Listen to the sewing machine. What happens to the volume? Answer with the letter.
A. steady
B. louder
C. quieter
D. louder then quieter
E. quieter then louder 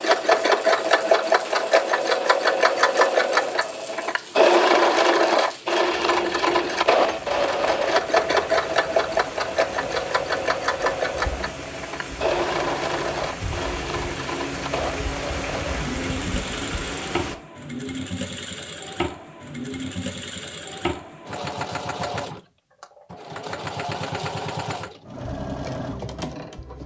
C.